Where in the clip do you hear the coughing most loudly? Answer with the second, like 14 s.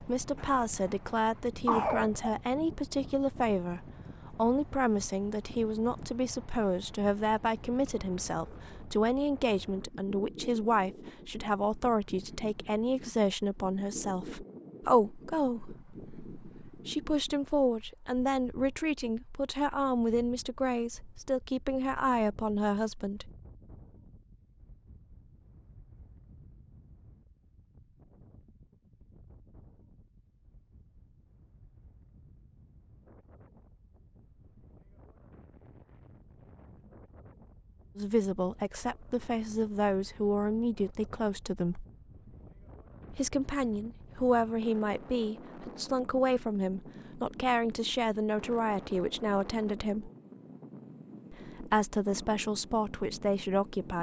2 s.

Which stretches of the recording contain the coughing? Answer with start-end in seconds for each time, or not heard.
0.3-2.3.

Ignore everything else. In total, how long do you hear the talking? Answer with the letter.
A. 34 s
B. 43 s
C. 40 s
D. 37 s
D.